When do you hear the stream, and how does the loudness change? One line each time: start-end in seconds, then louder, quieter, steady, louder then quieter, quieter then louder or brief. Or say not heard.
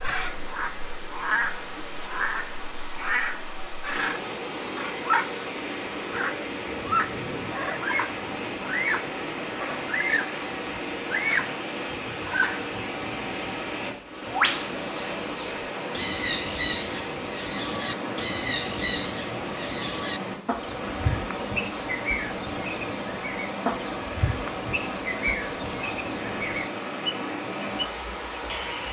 0.0-28.8 steady.